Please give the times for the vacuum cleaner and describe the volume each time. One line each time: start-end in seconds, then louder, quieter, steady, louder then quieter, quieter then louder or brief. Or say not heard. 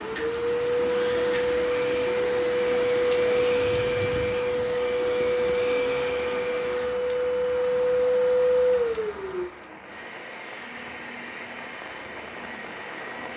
0.0-13.3 quieter.